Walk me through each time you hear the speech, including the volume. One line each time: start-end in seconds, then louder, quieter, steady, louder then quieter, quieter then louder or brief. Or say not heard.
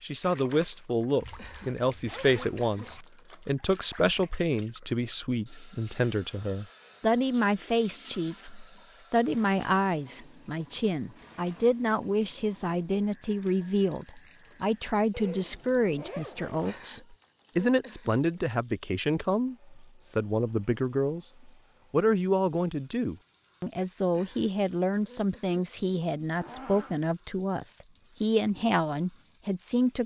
0.0-30.0 steady.